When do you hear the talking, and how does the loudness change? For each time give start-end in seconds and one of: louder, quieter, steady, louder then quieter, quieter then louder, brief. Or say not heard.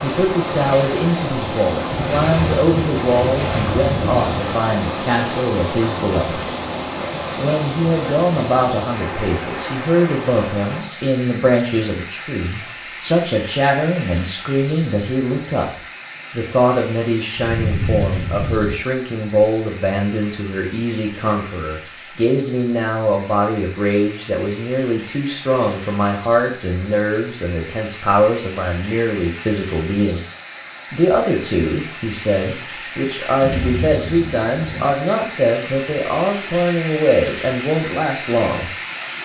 0.0-6.5 steady
7.3-30.2 steady
30.9-38.7 steady.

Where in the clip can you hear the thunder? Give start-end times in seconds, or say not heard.
1.9-4.5, 17.4-18.8, 33.4-34.9.